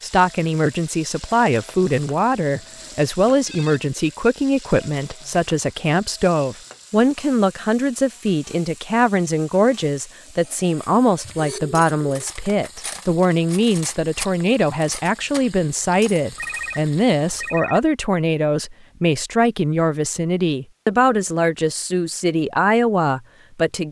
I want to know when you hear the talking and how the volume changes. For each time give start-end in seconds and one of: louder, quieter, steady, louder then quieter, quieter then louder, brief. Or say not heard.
0.0-23.8 steady.